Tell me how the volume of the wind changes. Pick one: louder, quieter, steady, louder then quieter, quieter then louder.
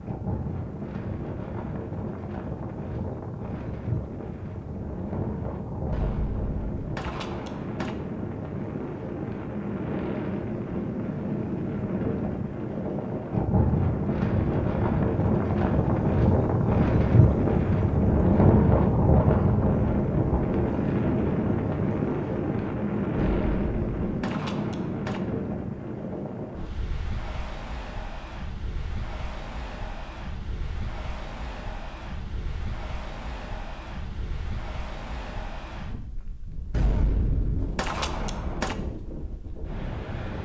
louder then quieter.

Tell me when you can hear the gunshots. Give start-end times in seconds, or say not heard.
5.9-8.0, 23.1-25.2, 36.7-38.8.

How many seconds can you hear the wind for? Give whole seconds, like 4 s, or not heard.
40 s.